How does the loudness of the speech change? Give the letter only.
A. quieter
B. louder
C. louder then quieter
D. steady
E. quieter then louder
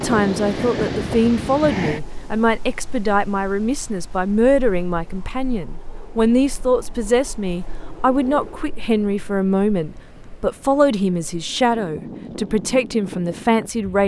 D.